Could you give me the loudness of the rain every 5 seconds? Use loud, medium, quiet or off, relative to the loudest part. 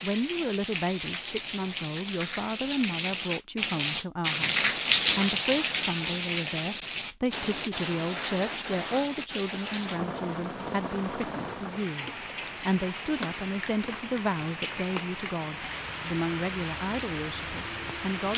loud, loud, medium, medium.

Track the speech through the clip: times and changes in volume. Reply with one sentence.
The speech can be heard from 0.0 to 18.3 s, at a steady volume.